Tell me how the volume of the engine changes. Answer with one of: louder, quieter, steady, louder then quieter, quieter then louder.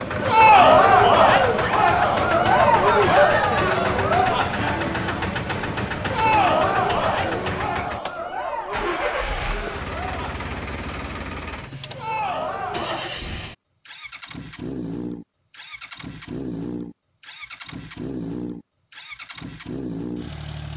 quieter.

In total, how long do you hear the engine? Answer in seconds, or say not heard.
21 s.